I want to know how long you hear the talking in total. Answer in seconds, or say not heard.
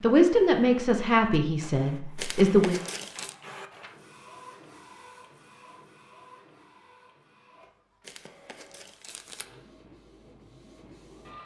3 s.